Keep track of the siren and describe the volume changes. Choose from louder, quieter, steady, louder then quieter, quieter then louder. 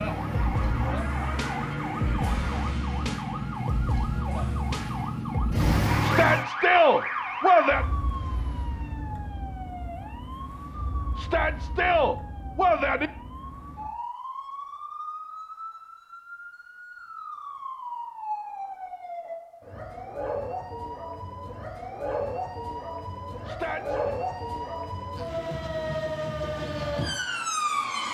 quieter then louder.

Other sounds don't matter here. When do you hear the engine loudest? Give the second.
6 s.